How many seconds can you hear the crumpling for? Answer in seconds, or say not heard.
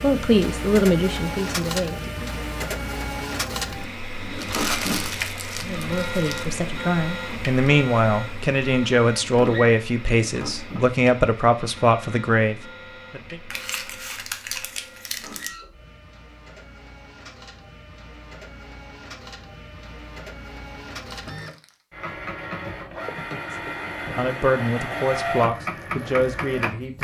5 s.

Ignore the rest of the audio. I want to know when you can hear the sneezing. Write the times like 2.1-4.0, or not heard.
not heard.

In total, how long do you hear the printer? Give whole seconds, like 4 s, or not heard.
27 s.